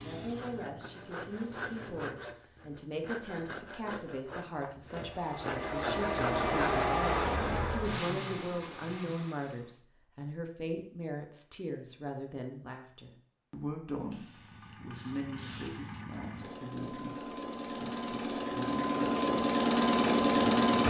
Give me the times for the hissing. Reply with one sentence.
You can hear the hissing from 0.0 to 2.1 s and from 13.9 to 16.2 s.